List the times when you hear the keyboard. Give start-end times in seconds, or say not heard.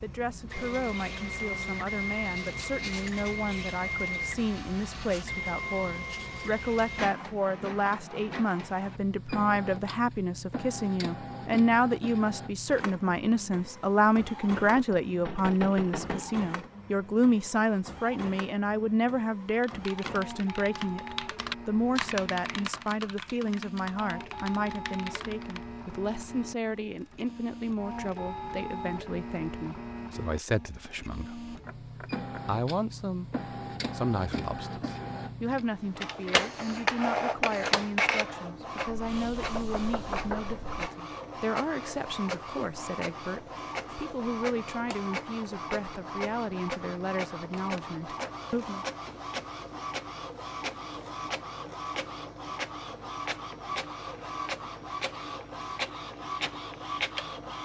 19.6-25.6.